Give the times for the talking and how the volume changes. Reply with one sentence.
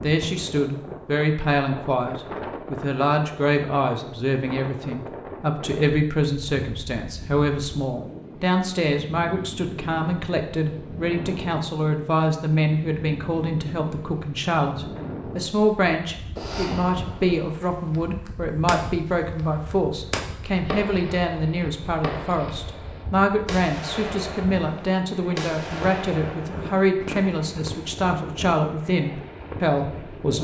You can hear the talking from 0.0 to 30.4 s, at a steady volume.